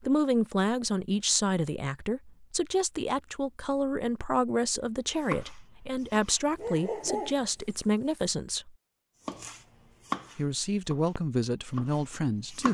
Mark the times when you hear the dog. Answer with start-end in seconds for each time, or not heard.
6.5-8.2.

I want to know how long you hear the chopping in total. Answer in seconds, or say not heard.
5 s.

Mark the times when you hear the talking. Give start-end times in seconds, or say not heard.
0.0-8.7, 10.3-12.6.